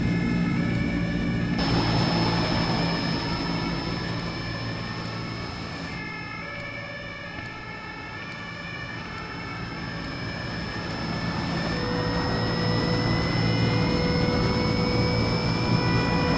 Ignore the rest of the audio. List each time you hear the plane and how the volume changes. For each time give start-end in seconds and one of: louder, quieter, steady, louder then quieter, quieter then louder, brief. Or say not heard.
0.0-16.3 quieter then louder.